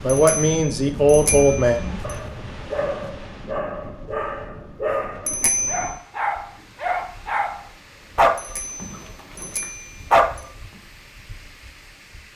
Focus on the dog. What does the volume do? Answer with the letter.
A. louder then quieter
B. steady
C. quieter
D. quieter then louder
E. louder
A.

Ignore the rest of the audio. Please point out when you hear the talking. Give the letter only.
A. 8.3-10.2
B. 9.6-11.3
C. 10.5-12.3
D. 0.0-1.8
D.